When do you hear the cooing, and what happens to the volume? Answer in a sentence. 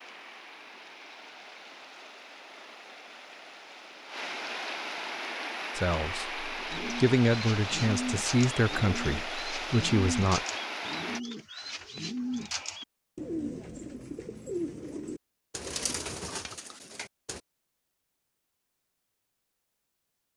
The cooing can be heard from 6.7 to 17.4 s, at a steady volume.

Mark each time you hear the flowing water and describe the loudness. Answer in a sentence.
The flowing water can be heard from 0.0 to 11.2 s, getting louder.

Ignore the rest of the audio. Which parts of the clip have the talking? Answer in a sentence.
The talking can be heard from 5.8 to 10.4 s.